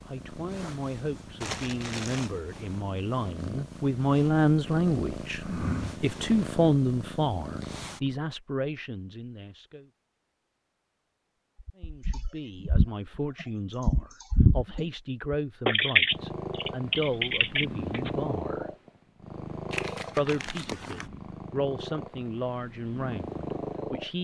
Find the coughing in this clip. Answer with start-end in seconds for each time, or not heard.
not heard.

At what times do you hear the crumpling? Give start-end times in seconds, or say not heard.
1.4-2.4, 19.7-21.1.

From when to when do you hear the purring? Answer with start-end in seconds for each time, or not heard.
0.0-8.2, 16.1-24.1.